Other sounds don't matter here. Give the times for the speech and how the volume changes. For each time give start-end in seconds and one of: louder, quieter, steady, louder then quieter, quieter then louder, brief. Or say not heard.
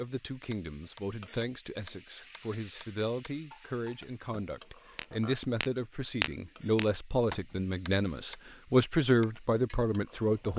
0.0-10.5 louder.